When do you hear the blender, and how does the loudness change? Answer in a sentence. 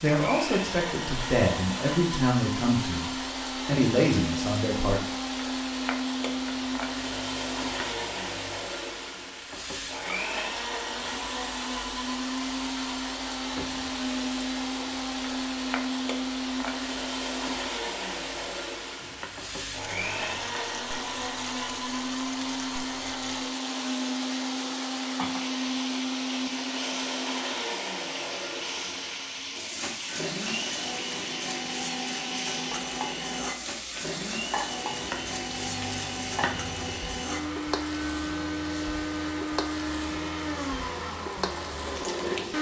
You can hear the blender from 0.0 to 42.5 s, at a steady volume.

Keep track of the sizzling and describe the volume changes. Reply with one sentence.
The volume of the sizzling stays about the same.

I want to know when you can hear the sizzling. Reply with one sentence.
You can hear the sizzling from 0.0 to 42.5 s.